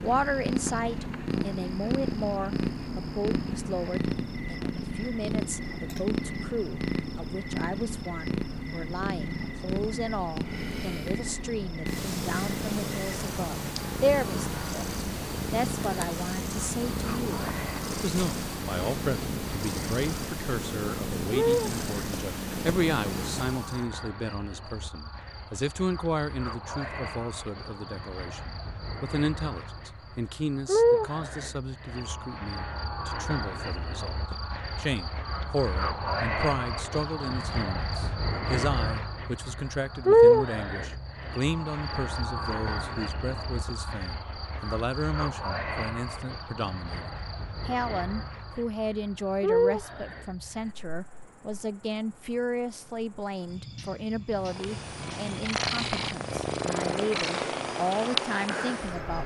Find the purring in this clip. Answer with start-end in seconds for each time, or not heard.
0.0-23.9, 54.4-59.2.